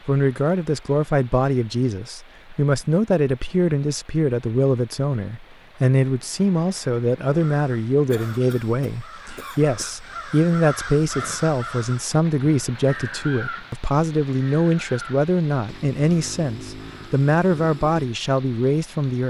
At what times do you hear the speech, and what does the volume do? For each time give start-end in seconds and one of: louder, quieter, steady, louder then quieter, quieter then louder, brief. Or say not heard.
0.1-19.2 steady.